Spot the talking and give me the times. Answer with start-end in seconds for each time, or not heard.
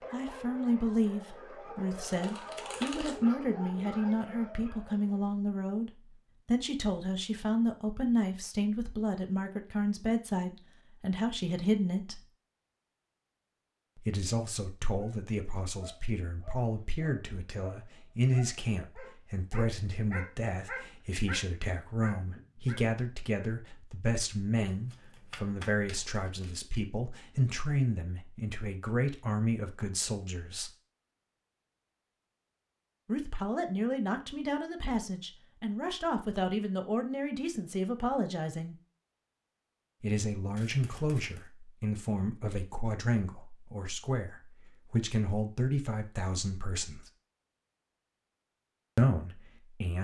0.1-12.2, 13.9-30.7, 33.0-38.8, 40.0-47.1, 49.0-49.9.